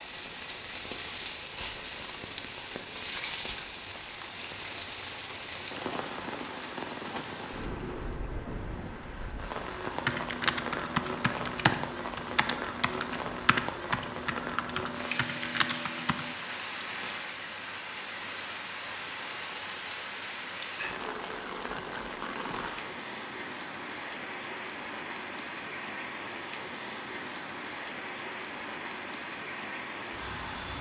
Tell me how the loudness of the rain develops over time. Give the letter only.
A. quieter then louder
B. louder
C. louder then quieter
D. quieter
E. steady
E.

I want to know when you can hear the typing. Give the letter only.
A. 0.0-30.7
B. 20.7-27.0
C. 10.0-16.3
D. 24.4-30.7
C.